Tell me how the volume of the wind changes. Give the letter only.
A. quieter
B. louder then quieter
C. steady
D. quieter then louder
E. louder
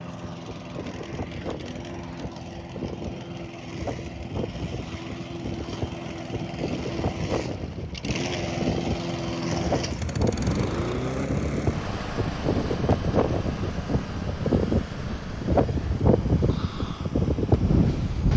E.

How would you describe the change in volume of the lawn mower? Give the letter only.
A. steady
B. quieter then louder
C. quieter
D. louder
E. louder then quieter
E.